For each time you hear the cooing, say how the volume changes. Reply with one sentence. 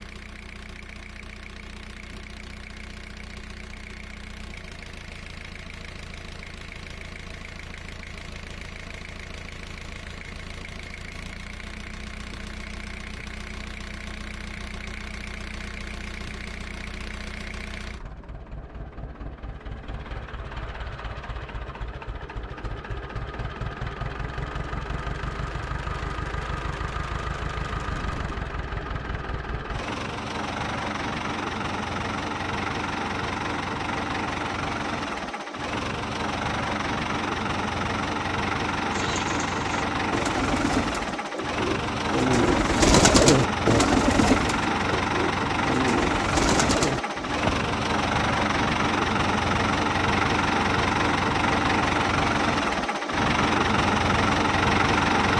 The cooing can be heard from 38.9 to 47.7 s, getting louder then quieter.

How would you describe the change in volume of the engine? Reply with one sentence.
The loudness of the engine goes up.